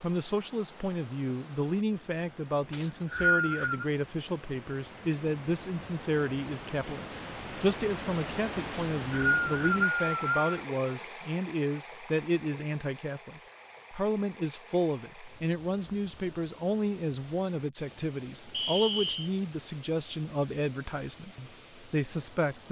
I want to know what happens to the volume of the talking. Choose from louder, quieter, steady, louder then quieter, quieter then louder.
steady.